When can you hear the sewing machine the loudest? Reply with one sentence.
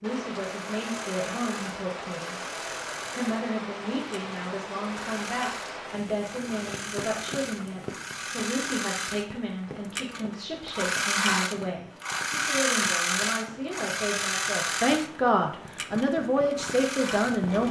The loudest moment of the sewing machine is at 13 seconds.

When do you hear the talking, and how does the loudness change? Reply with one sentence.
The talking can be heard briefly from 0.0 to 2.4 s; and from 3.1 to 17.6 s, getting louder.